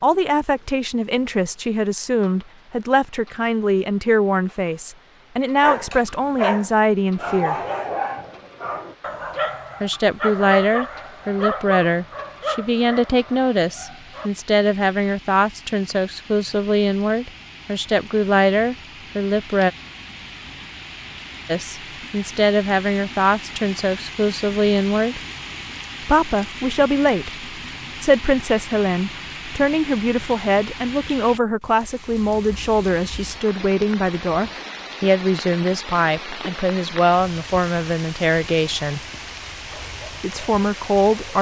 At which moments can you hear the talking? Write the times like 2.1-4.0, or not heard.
0.0-7.5, 9.8-19.7, 21.4-25.2, 26.1-39.0, 40.2-41.3.